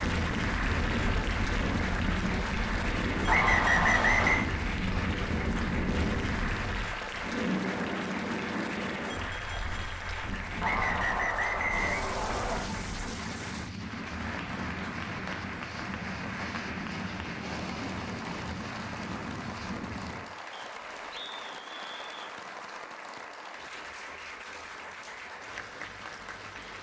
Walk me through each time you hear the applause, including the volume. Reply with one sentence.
The applause can be heard from 0.0 to 26.7 s, getting quieter.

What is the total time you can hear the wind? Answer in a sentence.
You can hear the wind for 20 seconds altogether.